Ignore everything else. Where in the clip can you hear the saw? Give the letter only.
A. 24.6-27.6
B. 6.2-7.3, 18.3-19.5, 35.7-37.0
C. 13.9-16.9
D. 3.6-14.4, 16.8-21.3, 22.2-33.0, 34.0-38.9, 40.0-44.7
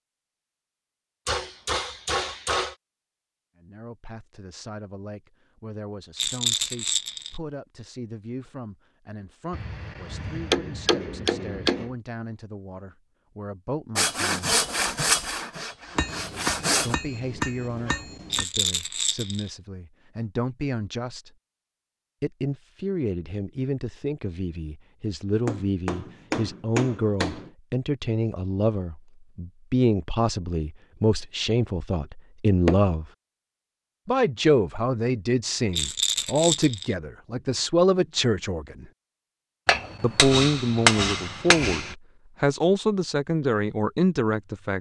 C.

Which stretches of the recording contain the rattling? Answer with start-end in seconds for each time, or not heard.
6.2-7.3, 18.3-19.5, 35.7-37.0.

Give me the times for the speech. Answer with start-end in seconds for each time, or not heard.
3.6-14.4, 16.8-21.3, 22.2-33.0, 34.0-38.9, 40.0-44.7.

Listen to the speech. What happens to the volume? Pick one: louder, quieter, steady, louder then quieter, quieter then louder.
louder.